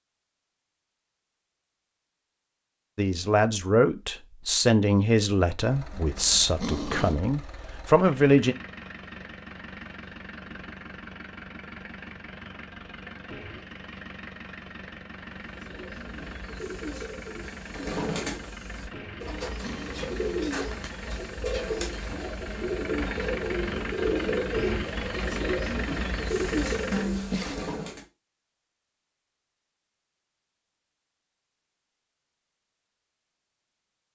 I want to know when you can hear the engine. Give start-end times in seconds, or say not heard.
5.7-27.1.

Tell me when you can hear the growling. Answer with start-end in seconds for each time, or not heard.
5.9-7.2, 18.9-20.9, 26.9-27.6.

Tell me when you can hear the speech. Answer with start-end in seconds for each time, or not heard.
3.0-8.6.